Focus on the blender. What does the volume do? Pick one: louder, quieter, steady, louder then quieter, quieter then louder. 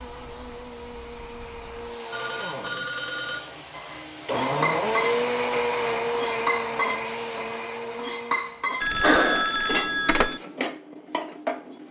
louder then quieter.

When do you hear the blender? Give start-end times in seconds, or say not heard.
0.0-8.8.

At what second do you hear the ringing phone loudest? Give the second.
9 s.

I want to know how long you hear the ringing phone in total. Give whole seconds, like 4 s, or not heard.
3 s.